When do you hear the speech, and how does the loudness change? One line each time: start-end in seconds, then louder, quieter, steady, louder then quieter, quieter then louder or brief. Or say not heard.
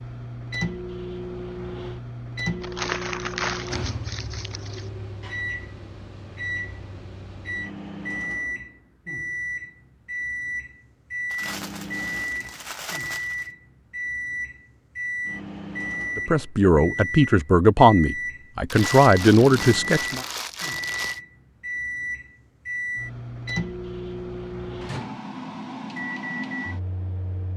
16.1-20.2 steady.